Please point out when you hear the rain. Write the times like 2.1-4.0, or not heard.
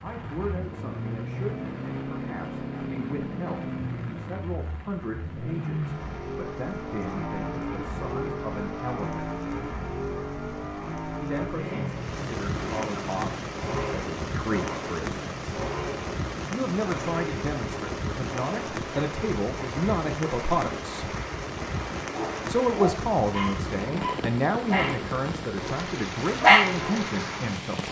0.0-27.8.